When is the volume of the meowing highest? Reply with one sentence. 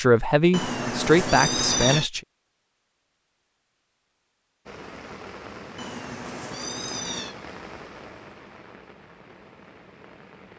The loudest moment of the meowing is at 2 seconds.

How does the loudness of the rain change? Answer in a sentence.
The volume of the rain goes down.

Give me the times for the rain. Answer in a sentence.
You can hear the rain from 4.7 to 10.5 s.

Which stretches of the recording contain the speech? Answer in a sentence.
The speech can be heard from 0.0 to 2.2 s.